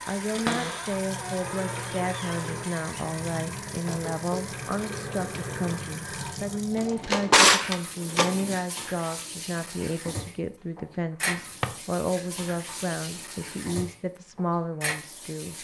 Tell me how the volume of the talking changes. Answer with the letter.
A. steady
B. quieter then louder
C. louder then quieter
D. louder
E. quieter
A.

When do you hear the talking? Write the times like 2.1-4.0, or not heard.
0.1-15.5.